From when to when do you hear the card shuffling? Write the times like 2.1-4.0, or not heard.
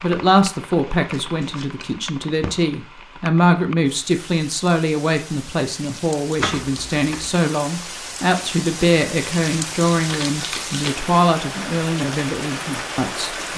1.1-2.6, 6.3-7.3, 9.9-11.0.